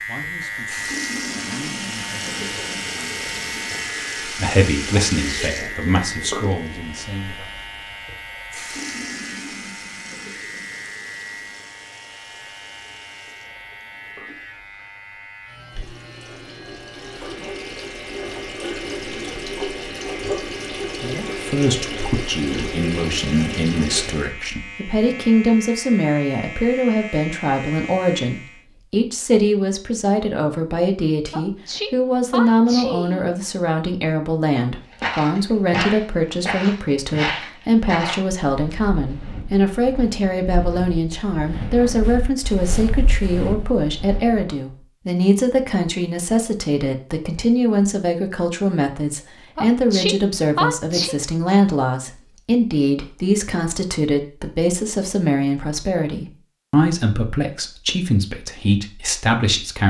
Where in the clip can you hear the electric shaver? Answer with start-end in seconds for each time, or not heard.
0.0-28.6.